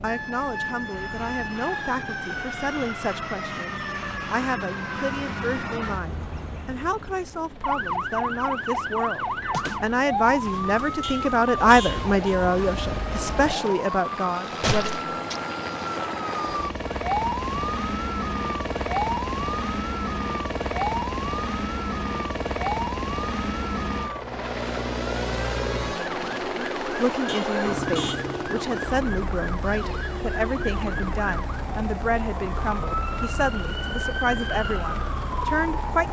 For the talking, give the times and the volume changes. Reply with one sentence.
You can hear the talking from 0.0 to 14.9 s, getting louder; and from 26.6 to 36.0 s, at a steady volume.